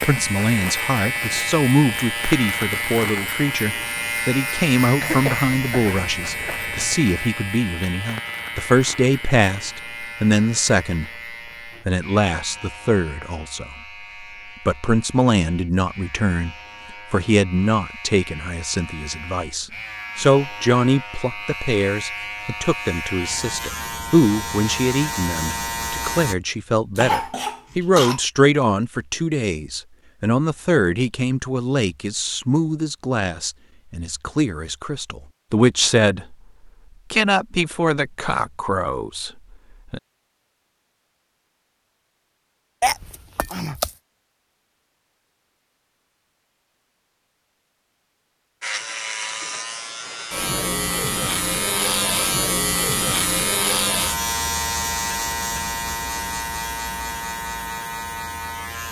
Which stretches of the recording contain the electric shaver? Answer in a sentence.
You can hear the electric shaver from 0.0 to 26.4 s and from 48.6 to 58.8 s.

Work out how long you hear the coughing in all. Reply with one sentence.
The coughing can be heard for 4 seconds in total.